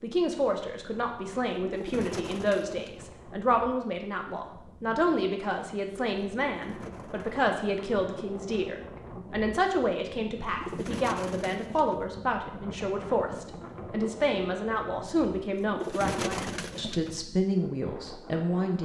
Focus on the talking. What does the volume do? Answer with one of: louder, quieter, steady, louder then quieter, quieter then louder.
steady.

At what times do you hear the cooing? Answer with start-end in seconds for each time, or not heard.
1.6-3.1, 6.4-7.3, 10.4-12.1, 15.5-17.2.